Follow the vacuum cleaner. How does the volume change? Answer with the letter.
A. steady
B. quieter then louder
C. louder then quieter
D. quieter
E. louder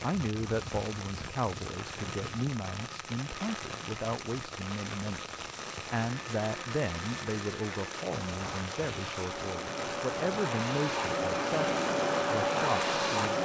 E.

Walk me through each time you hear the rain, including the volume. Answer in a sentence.
The rain can be heard from 0.0 to 13.4 s, at a steady volume.